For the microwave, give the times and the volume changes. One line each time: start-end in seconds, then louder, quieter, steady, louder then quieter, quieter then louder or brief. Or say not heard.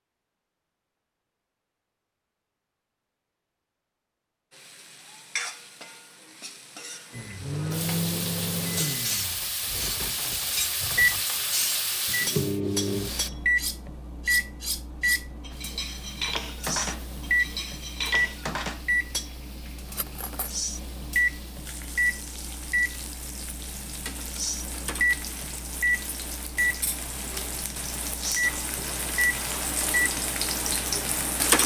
7.1-31.6 steady.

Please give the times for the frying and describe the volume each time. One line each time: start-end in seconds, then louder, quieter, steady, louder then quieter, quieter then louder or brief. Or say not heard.
4.5-13.3 louder
15.5-31.6 louder.